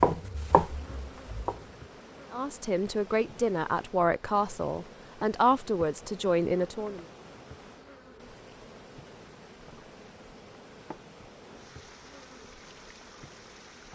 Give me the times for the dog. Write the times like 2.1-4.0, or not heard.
not heard.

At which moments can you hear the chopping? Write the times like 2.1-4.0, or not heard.
0.0-1.8.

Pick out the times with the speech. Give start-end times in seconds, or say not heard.
2.3-7.0.